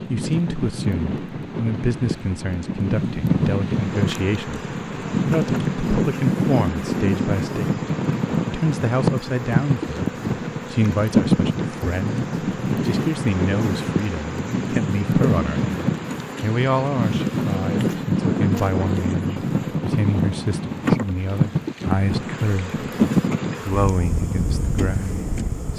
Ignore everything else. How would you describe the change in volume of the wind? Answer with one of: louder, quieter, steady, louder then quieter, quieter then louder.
steady.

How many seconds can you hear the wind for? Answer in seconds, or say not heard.
26 s.